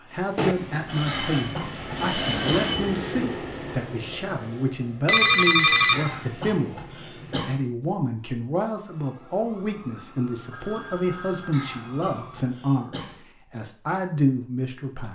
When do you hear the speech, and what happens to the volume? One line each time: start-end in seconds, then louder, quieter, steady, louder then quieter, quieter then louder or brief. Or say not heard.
0.0-15.0 steady.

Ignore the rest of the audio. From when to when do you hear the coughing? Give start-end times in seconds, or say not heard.
1.1-2.7, 5.9-7.6, 11.5-13.2.